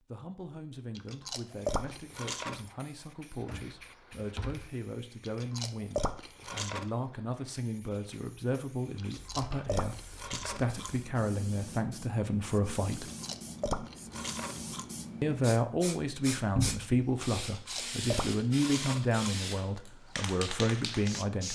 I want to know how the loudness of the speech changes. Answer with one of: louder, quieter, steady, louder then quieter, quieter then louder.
louder.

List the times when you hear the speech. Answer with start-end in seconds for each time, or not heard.
0.1-13.1, 15.2-21.5.